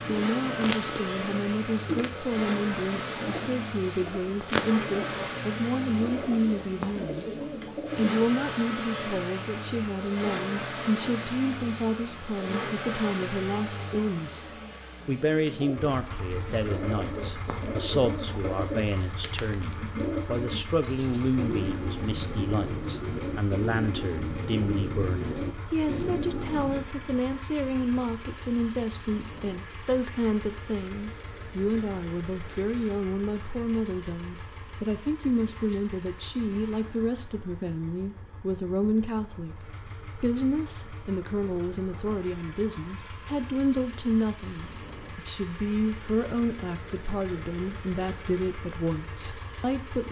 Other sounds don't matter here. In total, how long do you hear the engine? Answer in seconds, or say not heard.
50 s.